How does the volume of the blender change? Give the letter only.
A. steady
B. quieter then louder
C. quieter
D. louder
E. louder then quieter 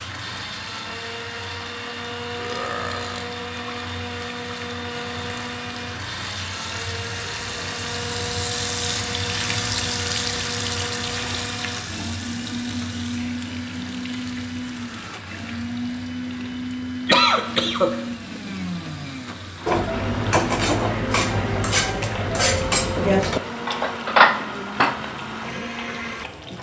A.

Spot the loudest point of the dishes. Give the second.
24 s.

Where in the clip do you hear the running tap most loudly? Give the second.
10 s.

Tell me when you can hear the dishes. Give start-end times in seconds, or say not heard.
19.6-25.1.